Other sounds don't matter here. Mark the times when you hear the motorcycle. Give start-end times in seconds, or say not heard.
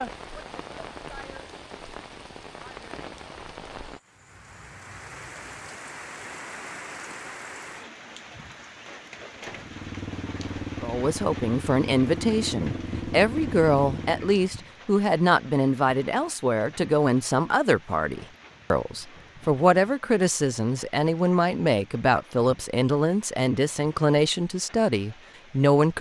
9.4-14.4.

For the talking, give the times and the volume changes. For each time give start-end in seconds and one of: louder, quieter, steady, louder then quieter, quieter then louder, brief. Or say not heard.
10.8-25.9 steady.